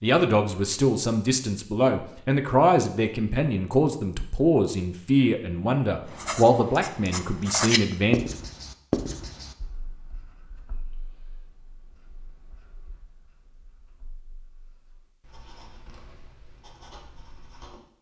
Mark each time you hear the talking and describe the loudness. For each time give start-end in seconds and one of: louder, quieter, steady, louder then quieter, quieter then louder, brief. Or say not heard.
0.0-8.2 steady.